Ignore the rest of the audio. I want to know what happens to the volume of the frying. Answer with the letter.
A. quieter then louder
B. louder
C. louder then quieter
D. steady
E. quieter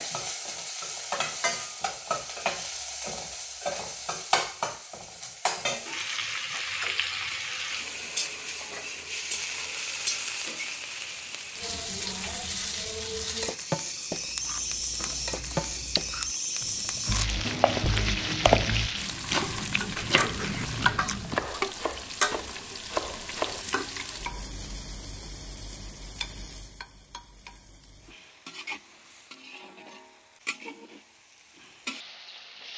E.